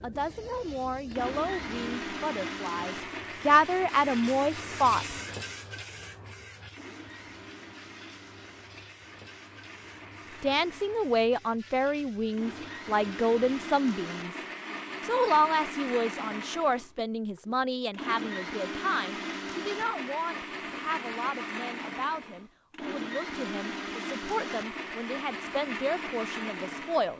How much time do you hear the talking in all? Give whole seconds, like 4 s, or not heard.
21 s.